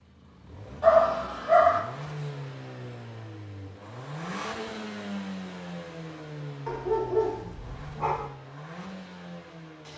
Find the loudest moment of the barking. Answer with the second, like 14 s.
1 s.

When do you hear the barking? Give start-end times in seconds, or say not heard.
0.8-1.8, 6.7-8.3.